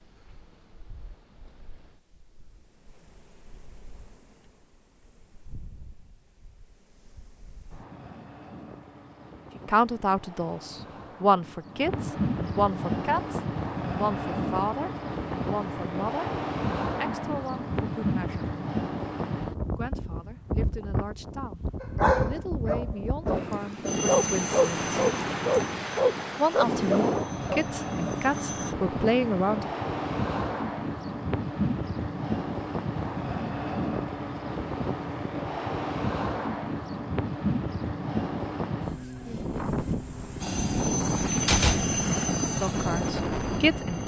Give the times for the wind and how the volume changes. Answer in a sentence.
You can hear the wind from 0.0 to 44.0 s, getting louder.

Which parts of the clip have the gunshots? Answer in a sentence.
The gunshots can be heard from 41.5 to 42.3 s.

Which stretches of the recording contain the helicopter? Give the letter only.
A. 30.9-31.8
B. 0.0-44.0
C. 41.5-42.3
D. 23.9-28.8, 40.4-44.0
D.